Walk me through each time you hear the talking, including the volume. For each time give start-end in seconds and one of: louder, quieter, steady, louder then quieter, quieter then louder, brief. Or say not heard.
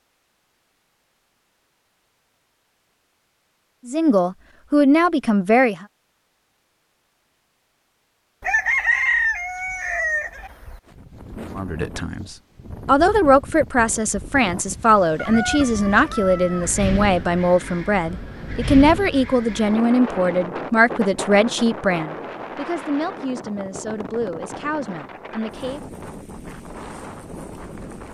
3.9-5.8 brief
11.6-25.8 quieter.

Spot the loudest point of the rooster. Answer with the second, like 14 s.
9 s.